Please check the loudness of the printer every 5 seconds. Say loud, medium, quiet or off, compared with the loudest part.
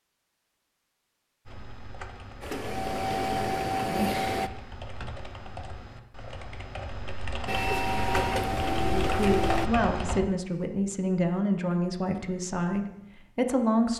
loud, loud, off.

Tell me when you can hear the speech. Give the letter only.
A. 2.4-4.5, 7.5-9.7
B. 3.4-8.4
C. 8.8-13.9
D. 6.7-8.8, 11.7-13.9
C.